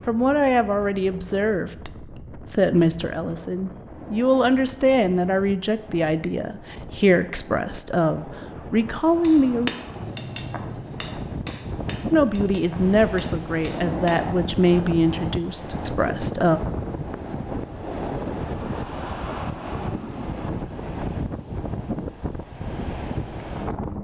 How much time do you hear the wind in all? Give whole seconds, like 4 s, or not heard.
24 s.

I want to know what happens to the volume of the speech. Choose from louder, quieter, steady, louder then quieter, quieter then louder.
steady.